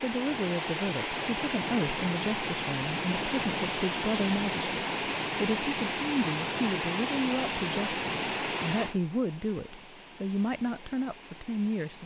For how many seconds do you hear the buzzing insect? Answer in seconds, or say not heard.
not heard.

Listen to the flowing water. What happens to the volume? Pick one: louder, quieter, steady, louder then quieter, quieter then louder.
quieter.